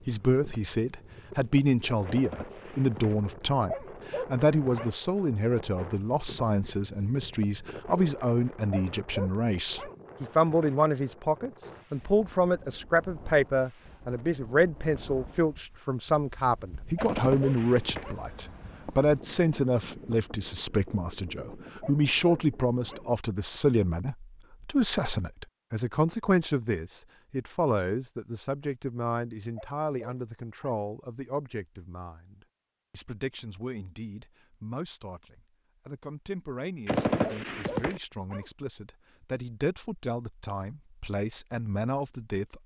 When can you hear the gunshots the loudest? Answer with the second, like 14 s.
37 s.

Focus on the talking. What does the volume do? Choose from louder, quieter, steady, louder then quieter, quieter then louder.
quieter.